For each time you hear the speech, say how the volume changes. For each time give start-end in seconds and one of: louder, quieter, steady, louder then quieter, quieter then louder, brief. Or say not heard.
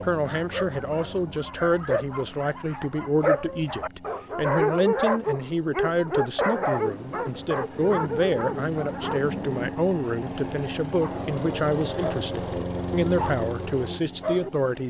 0.0-14.8 steady.